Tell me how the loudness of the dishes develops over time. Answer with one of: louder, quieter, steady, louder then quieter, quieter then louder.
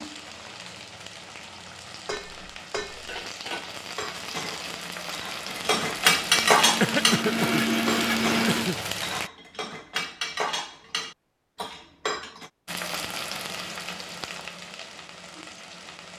louder then quieter.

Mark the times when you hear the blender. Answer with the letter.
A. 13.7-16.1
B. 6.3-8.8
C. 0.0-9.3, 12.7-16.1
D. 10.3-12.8
B.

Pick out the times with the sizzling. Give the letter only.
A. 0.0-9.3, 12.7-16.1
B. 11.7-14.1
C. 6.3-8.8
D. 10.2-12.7
A.